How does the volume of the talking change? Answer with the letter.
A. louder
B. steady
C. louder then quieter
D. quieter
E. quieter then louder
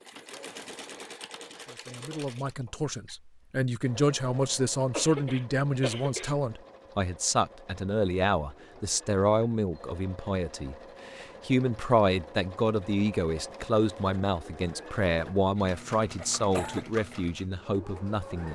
B.